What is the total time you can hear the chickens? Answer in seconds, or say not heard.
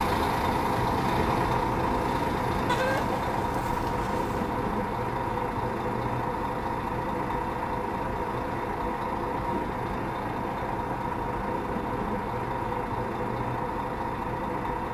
2 s.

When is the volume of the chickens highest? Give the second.
3 s.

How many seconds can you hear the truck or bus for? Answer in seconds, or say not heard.
15 s.